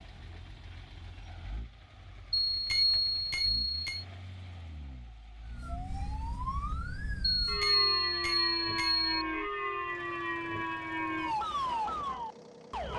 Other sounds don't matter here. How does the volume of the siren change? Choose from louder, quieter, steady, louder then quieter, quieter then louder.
louder.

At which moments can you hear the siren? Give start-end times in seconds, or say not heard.
5.5-12.9.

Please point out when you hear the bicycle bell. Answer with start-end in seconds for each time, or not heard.
2.3-4.0, 7.4-9.1.